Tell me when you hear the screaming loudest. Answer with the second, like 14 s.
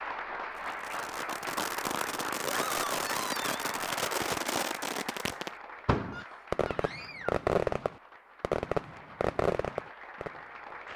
3 s.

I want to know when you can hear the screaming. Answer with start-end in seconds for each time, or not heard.
2.5-3.6, 6.1-7.5.